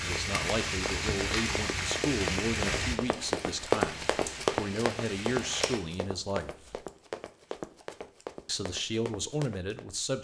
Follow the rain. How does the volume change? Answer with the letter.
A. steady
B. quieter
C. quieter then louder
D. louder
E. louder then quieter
B.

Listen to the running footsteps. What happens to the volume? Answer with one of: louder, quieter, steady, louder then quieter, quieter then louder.
louder then quieter.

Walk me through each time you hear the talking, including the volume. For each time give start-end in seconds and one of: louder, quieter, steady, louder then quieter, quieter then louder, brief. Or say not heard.
0.0-6.8 steady
8.4-10.1 brief.